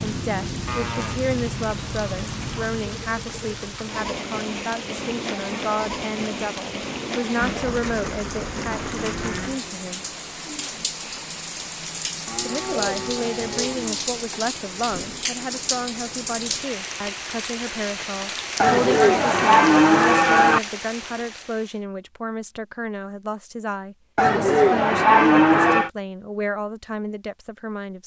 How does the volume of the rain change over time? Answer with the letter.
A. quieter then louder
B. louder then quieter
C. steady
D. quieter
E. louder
C.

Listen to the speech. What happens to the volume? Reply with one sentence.
The volume of the speech stays about the same.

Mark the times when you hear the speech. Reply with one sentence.
You can hear the speech from 0.0 to 10.0 s and from 12.4 to 28.0 s.